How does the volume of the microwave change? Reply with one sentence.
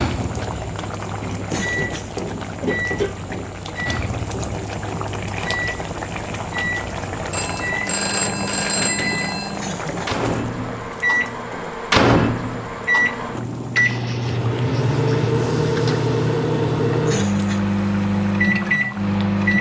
The loudness of the microwave goes up.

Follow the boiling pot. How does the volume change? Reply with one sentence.
The loudness of the boiling pot goes down.